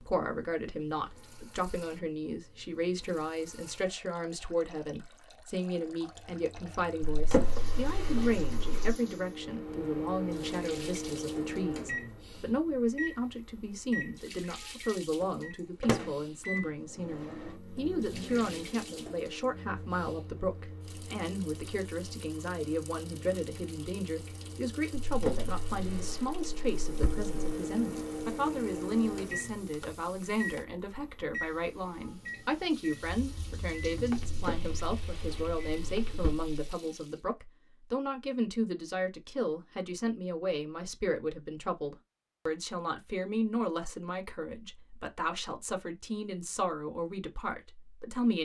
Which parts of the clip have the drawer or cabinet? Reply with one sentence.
You can hear the drawer or cabinet from 7.1 to 8.9 s, from 25.0 to 27.3 s and from 34.3 to 36.5 s.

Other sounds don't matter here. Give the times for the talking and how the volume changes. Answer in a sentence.
You can hear the talking from 0.0 to 48.4 s, at a steady volume.